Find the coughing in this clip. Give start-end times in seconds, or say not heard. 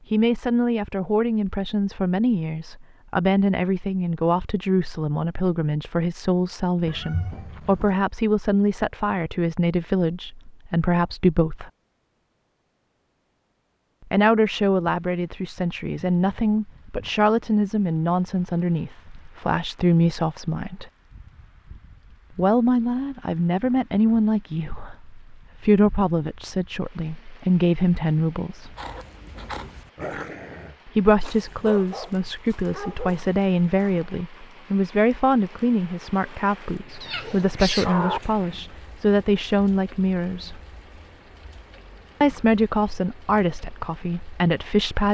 not heard.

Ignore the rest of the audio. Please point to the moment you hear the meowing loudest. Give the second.
38 s.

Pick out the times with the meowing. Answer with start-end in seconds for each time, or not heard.
6.8-8.0, 37.0-38.2.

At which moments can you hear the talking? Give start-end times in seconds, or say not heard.
0.1-11.7, 14.1-20.9, 22.3-28.8, 30.9-40.6, 42.2-45.0.